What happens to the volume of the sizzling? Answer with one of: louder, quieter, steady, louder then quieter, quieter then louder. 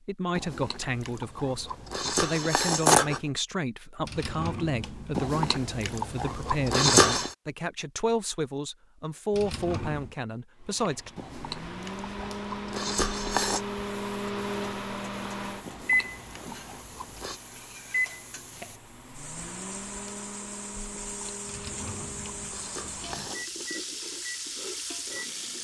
louder.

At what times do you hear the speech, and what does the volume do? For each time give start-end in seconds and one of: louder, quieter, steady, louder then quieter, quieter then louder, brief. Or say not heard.
0.1-11.1 steady.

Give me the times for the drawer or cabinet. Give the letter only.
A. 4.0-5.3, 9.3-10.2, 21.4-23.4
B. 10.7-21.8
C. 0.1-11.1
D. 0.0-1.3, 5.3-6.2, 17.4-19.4
A.